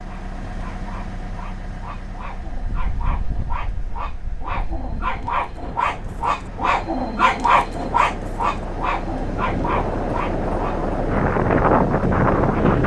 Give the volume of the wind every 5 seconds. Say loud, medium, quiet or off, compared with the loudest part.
quiet, quiet, loud.